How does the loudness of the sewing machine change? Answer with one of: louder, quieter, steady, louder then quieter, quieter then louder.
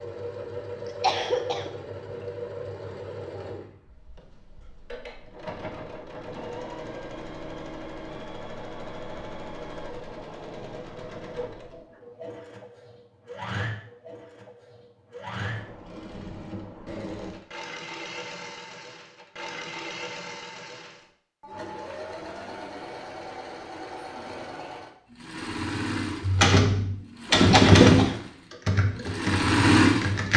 louder.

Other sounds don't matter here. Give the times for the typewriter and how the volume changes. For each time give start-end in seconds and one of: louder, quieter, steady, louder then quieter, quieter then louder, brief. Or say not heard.
26.2-30.3 louder then quieter.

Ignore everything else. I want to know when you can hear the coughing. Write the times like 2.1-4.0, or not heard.
0.8-1.7, 27.3-28.2.